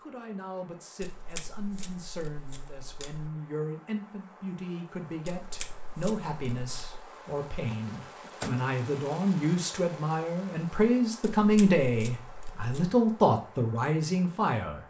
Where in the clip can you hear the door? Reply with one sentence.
You can hear the door from 7.7 to 8.7 s.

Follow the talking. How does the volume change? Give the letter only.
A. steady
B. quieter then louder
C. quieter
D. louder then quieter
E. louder
E.